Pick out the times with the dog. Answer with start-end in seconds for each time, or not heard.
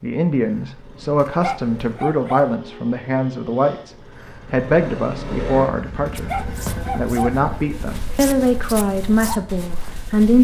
1.2-2.5, 6.0-7.4.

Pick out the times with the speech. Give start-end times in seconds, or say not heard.
0.0-3.9, 4.5-6.3, 7.0-10.4.